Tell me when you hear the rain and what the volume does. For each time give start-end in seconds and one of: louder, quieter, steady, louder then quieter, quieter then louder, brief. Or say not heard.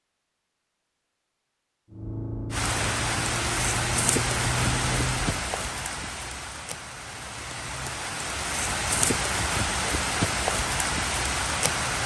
2.5-12.0 quieter then louder.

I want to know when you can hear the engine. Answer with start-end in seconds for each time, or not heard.
1.9-5.5.